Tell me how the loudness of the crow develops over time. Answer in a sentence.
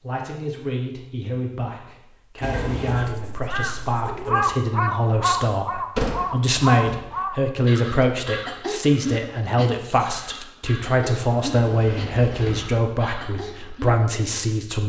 The volume of the crow goes down.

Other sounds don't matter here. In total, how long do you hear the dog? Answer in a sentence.
You can't hear the dog here.